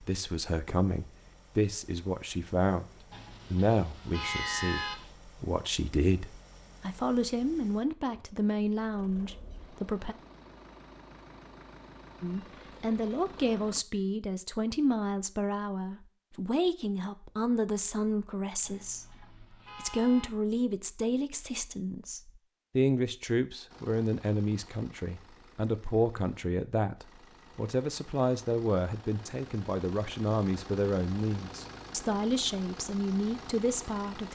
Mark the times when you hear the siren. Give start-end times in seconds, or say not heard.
not heard.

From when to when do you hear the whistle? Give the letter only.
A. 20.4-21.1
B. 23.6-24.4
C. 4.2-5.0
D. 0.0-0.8
C.